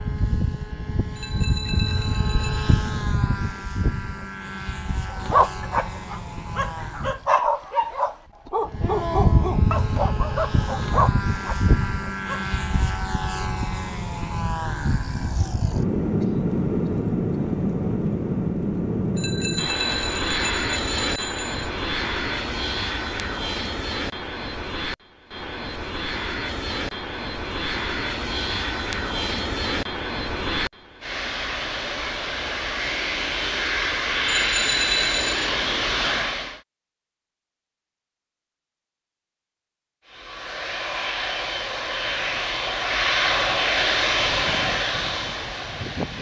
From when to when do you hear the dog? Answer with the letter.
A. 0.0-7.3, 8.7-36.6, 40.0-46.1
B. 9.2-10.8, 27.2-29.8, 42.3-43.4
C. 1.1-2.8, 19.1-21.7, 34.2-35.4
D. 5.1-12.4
D.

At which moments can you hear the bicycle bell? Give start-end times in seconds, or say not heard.
1.1-2.8, 19.1-21.7, 34.2-35.4.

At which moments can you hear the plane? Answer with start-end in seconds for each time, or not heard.
0.0-7.3, 8.7-36.6, 40.0-46.1.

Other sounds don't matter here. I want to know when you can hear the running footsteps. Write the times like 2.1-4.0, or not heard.
not heard.